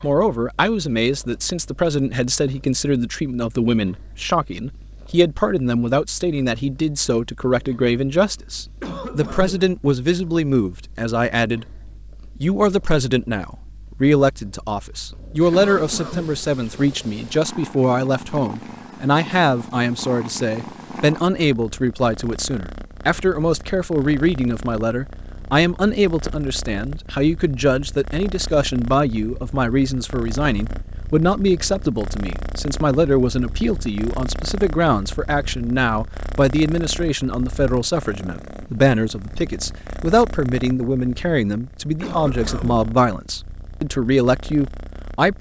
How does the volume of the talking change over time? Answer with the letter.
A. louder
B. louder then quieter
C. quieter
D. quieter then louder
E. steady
E.